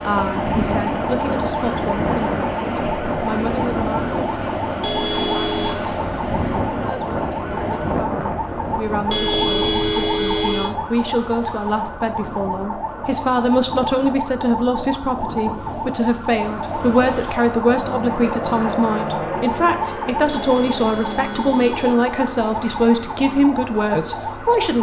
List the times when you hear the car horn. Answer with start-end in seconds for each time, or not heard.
4.8-5.8, 9.1-10.8, 20.3-21.9.